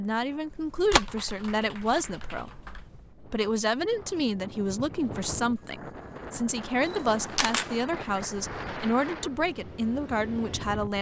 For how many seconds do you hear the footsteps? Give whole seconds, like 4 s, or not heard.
not heard.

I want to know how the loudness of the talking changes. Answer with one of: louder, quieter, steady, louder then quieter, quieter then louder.
steady.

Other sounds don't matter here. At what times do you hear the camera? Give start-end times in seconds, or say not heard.
0.5-2.9, 6.8-7.7.